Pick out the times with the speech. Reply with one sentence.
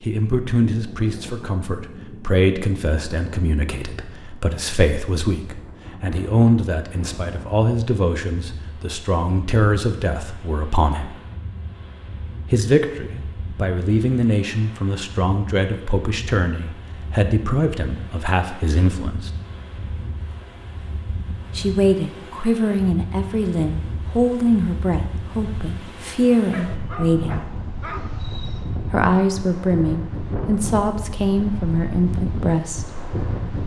The speech can be heard from 0.0 to 11.2 s, from 12.5 to 19.3 s, from 21.6 to 27.4 s and from 28.9 to 33.0 s.